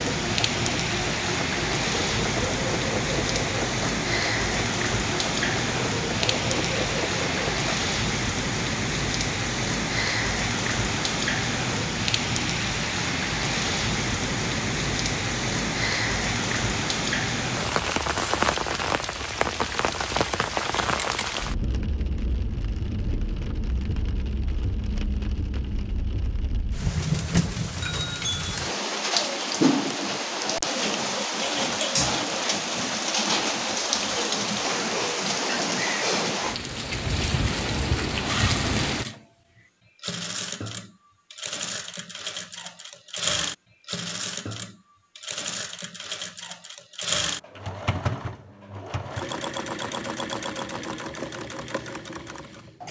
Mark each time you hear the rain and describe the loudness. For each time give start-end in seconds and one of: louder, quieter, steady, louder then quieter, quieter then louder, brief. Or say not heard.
0.0-39.0 steady.